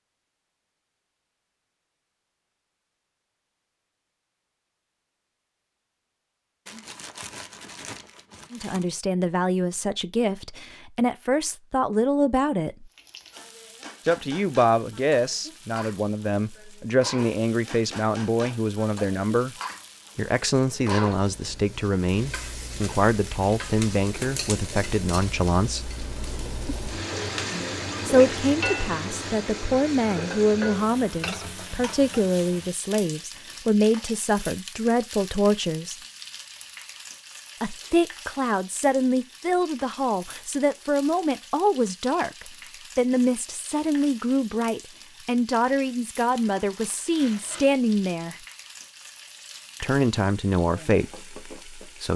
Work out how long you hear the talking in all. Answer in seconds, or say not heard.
37 s.